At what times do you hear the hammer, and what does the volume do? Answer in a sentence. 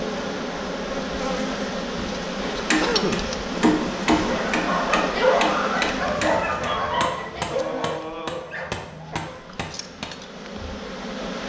You can hear the hammer from 2.4 to 10.1 s, getting quieter.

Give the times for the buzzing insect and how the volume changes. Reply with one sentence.
The buzzing insect can be heard from 0.0 to 11.4 s, getting quieter.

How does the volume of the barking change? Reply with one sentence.
The volume of the barking goes down.